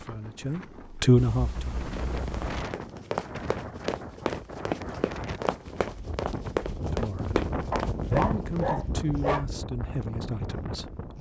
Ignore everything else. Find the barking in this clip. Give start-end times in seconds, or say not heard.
1.1-2.6, 7.7-9.4.